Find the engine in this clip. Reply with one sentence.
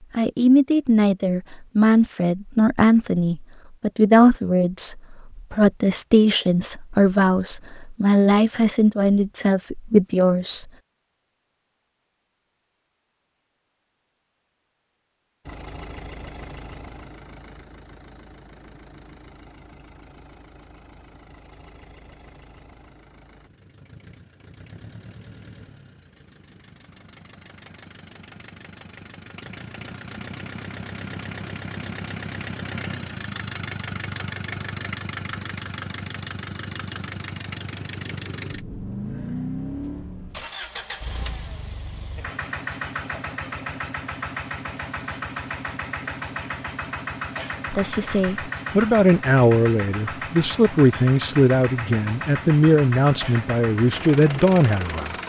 You can hear the engine from 15.4 to 55.2 s.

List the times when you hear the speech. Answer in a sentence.
You can hear the speech from 0.1 to 10.7 s and from 47.7 to 55.1 s.